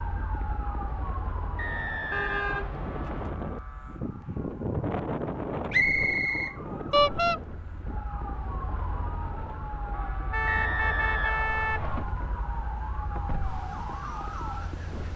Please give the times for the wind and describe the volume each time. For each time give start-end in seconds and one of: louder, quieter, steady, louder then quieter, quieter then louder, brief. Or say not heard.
0.0-15.1 louder then quieter.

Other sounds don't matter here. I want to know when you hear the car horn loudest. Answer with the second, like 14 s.
7 s.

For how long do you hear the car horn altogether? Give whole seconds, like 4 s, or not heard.
3 s.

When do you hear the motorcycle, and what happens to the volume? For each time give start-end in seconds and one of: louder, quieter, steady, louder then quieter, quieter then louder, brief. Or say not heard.
not heard.